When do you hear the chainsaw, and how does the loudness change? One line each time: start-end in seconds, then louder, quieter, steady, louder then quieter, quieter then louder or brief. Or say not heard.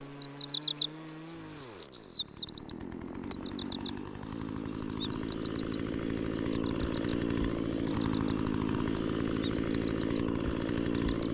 0.0-11.2 louder.